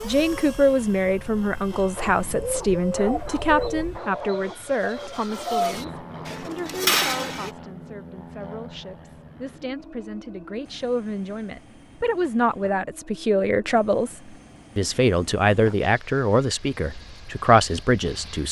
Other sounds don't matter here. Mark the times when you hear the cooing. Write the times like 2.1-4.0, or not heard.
2.1-7.5.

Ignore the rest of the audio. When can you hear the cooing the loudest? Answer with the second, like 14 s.
7 s.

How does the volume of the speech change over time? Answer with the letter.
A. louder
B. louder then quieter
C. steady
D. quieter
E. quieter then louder
E.